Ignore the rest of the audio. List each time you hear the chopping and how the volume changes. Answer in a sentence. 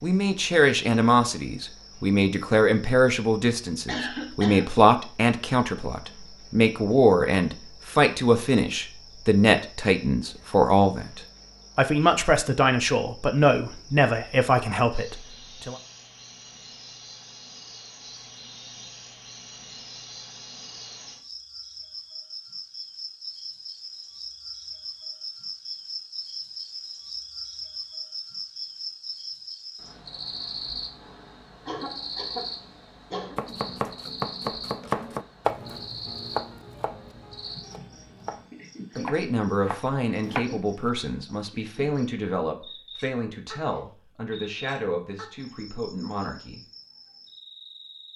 You can hear the chopping from 33.4 to 40.5 s, getting quieter then louder.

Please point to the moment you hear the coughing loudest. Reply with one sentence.
The volume of the coughing peaks at 4 seconds.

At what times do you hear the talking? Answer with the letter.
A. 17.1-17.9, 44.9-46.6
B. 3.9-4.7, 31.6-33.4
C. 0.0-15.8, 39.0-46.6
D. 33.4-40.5
C.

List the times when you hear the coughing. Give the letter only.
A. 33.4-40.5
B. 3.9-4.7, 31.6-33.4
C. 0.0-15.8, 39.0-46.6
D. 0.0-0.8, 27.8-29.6
B.